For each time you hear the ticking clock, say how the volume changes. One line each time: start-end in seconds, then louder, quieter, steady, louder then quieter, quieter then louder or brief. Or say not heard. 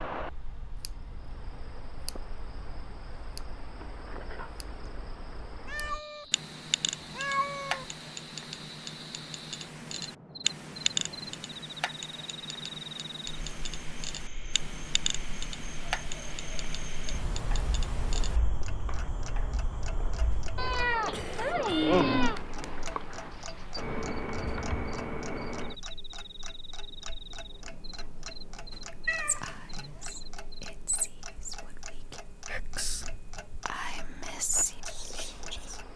0.0-35.9 louder then quieter.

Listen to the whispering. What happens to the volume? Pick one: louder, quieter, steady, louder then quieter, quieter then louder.
louder.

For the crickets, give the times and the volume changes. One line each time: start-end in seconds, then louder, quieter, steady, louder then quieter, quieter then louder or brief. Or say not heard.
0.0-35.9 louder then quieter.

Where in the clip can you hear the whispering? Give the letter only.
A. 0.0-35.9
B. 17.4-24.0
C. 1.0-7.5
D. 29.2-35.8
D.